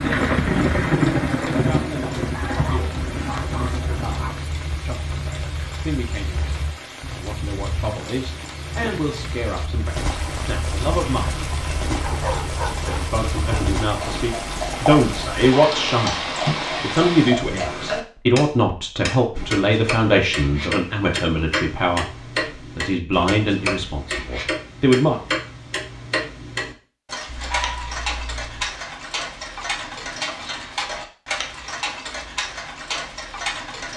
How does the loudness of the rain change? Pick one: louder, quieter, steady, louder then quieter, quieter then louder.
quieter then louder.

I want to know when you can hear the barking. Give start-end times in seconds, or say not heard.
2.3-4.3, 12.0-13.7, 27.2-28.6.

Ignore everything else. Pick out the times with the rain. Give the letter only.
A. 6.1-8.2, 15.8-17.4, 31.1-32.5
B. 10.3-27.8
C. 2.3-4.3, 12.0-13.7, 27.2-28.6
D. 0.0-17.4
D.